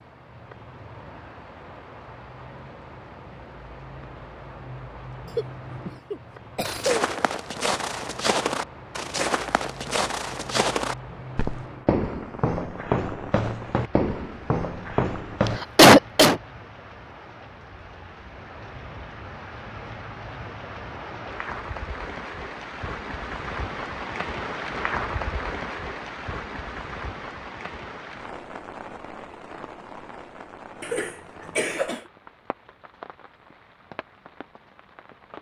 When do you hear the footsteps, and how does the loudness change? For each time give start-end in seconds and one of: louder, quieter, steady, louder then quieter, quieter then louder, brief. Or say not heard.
6.6-15.6 steady.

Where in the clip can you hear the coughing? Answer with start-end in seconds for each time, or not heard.
5.3-7.1, 15.4-16.4, 30.8-32.0.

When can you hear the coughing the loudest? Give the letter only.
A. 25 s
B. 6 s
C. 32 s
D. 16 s
D.